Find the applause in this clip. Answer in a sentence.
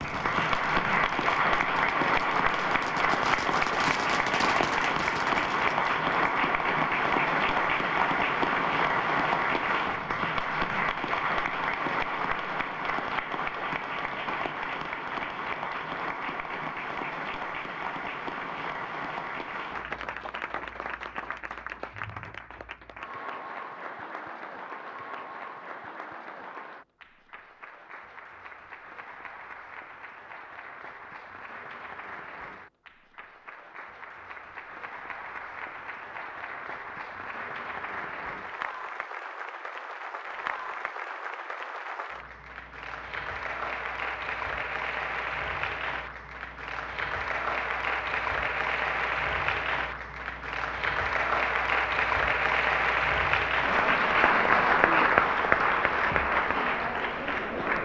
You can hear the applause from 0.0 to 57.7 s.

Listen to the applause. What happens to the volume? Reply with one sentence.
The loudness of the applause goes down, then up.